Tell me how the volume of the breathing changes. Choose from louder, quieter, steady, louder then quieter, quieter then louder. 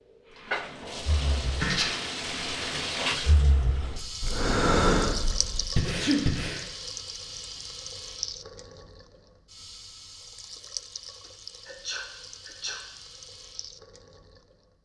louder then quieter.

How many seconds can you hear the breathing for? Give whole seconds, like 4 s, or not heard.
6 s.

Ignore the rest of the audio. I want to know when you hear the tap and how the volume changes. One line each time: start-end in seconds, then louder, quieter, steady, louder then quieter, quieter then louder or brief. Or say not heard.
0.1-14.7 quieter.